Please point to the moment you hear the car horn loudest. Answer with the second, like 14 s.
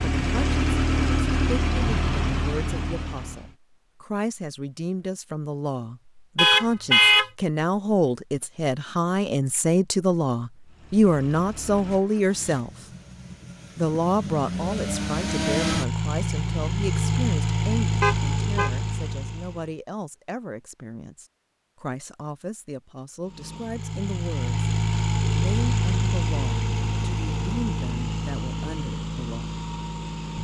7 s.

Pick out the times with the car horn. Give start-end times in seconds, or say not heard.
6.3-7.2, 18.0-18.7.